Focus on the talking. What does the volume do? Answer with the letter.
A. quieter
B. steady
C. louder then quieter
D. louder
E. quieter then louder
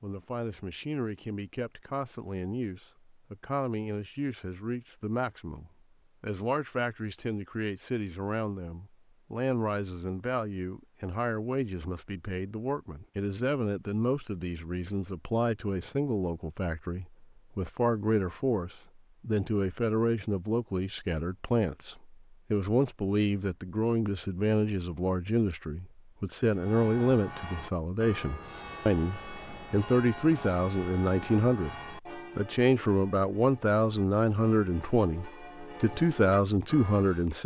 D.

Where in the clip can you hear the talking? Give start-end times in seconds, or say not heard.
0.0-37.4.